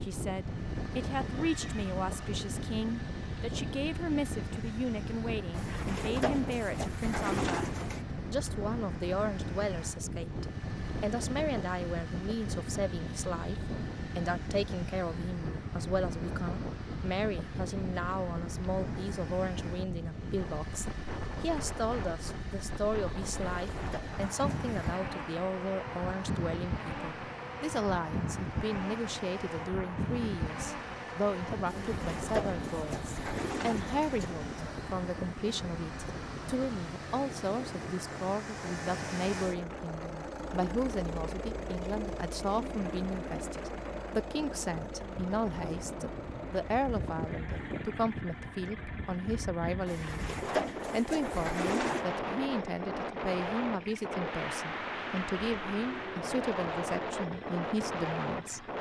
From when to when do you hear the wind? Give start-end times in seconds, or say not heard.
0.0-58.7.